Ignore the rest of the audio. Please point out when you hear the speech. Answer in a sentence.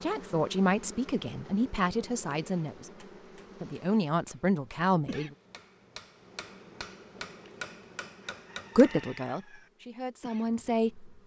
The speech can be heard from 0.0 to 5.3 s and from 8.8 to 11.1 s.